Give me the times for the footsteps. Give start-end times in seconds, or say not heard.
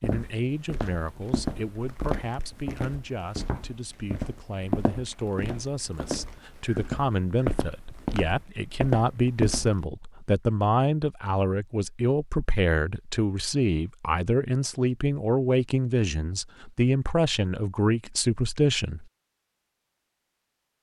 0.0-9.8.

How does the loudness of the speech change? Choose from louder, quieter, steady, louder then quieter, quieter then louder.
louder.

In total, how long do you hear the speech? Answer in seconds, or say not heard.
19 s.